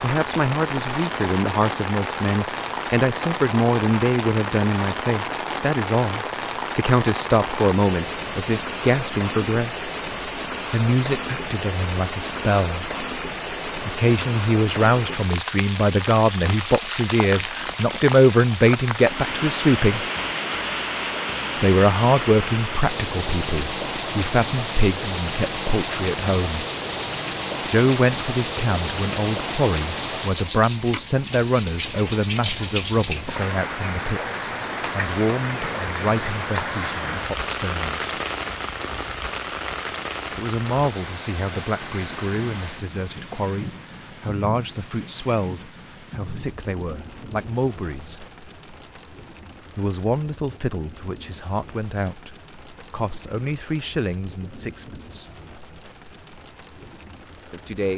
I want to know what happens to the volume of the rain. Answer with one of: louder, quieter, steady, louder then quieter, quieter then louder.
quieter.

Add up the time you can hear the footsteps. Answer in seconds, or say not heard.
not heard.